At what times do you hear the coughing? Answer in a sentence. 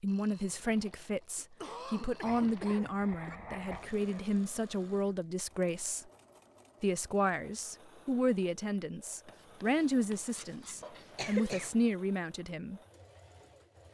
The coughing can be heard from 1.4 to 3.4 s and from 10.8 to 11.7 s.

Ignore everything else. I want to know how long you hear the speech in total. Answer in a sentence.
You can hear the speech for 12 seconds altogether.